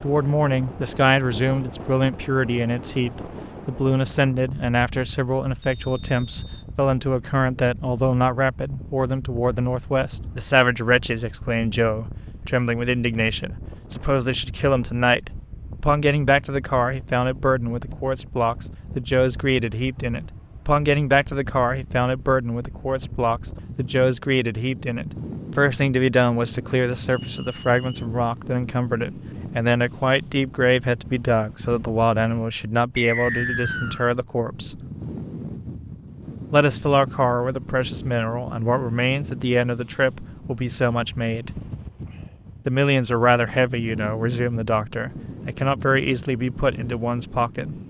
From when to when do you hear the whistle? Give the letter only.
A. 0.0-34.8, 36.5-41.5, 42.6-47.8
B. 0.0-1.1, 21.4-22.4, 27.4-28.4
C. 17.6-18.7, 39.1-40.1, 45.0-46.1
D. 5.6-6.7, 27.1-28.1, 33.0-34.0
D.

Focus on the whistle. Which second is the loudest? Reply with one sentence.
The loudest moment of the whistle is at 33 seconds.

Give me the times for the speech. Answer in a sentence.
The speech can be heard from 0.0 to 34.8 s, from 36.5 to 41.5 s and from 42.6 to 47.8 s.